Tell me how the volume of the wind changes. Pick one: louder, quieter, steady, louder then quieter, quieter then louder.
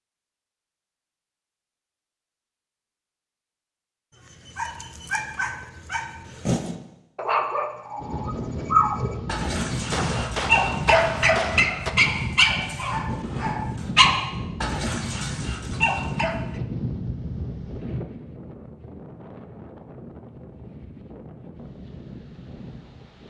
quieter.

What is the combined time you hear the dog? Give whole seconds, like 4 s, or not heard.
12 s.